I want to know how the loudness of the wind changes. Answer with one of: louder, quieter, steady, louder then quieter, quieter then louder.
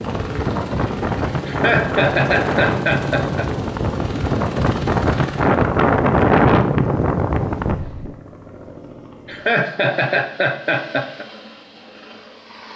louder.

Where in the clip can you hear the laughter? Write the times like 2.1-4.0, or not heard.
1.4-3.5, 9.2-11.2.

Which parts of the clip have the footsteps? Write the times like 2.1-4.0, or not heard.
not heard.